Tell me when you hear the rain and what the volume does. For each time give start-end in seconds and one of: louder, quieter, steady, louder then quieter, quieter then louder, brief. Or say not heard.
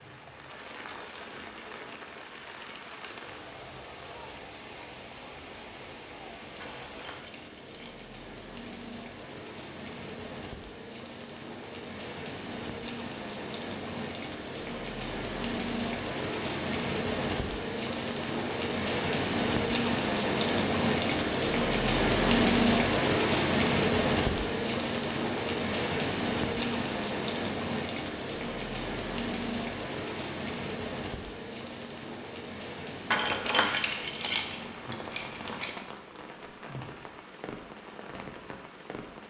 0.0-39.2 louder then quieter.